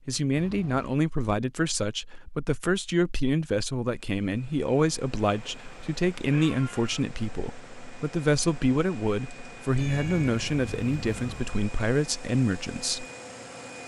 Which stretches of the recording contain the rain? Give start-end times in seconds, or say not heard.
not heard.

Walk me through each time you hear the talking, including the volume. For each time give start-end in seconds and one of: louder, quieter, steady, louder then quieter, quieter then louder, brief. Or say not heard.
0.1-13.1 steady.